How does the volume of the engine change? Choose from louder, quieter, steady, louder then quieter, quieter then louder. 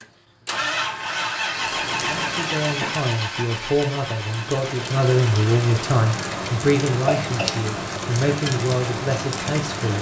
quieter.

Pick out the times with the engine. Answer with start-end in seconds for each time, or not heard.
0.0-9.9.